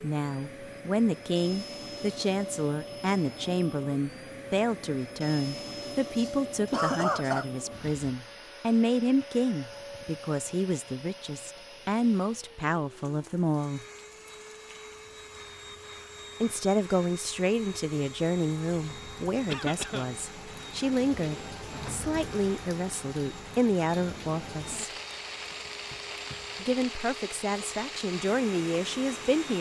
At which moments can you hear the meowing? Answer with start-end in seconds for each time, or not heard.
not heard.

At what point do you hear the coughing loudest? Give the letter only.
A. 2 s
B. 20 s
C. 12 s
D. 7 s
D.